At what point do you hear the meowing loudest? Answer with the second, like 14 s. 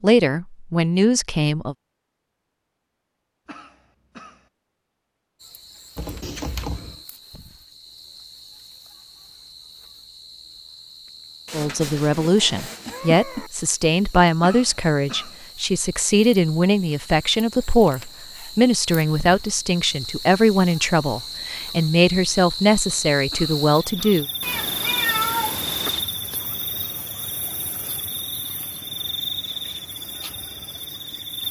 25 s.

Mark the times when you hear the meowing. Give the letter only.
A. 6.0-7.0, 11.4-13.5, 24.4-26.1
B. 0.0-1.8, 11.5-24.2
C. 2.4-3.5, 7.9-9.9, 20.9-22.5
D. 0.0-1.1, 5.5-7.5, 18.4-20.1
A.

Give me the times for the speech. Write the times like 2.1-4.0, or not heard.
0.0-1.8, 11.5-24.2.